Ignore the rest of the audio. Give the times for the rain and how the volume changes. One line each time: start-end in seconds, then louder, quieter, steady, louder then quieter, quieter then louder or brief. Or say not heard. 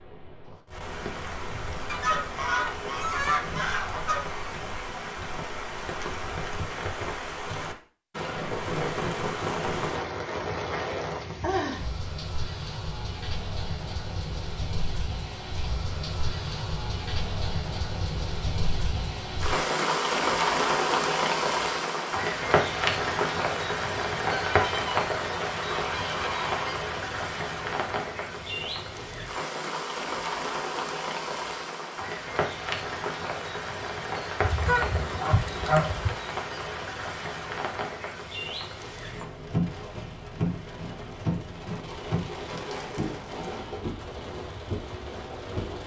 0.0-45.8 louder then quieter.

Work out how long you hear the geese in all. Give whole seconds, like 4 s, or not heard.
7 s.